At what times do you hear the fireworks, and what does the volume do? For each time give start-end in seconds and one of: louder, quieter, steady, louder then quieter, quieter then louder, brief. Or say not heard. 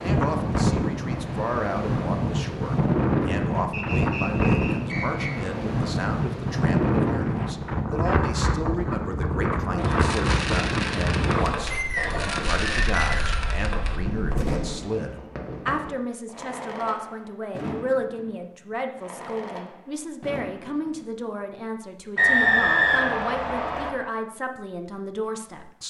9.8-21.5 quieter.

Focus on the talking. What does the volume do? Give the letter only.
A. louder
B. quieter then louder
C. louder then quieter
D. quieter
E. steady
E.